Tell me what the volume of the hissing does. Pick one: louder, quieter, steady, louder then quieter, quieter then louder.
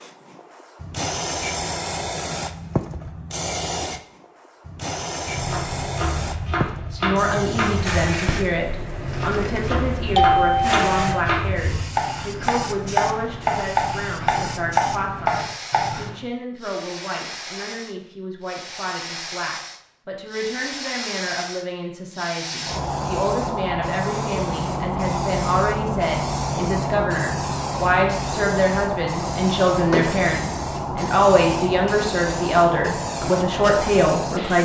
quieter then louder.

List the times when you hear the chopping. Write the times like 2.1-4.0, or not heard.
5.2-16.1.